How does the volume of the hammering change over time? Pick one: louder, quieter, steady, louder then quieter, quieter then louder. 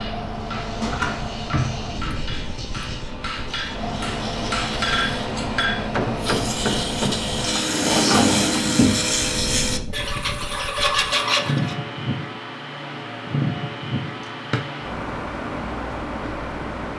louder.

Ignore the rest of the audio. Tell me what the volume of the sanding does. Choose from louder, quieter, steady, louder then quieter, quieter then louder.
louder.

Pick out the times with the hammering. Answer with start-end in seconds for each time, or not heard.
0.0-7.5.